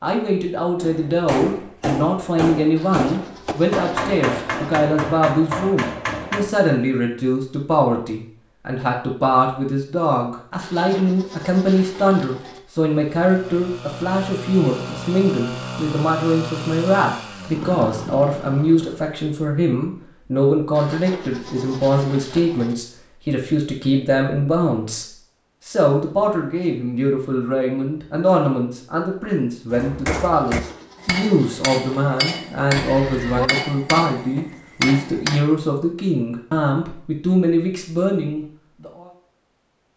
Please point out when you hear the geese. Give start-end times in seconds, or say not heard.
32.8-33.5.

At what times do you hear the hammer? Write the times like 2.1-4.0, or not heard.
0.8-6.5, 29.7-35.5.